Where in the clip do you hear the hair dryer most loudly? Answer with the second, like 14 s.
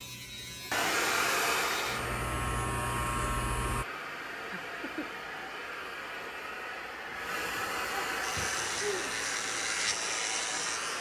1 s.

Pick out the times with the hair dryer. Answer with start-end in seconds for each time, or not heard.
0.0-10.9.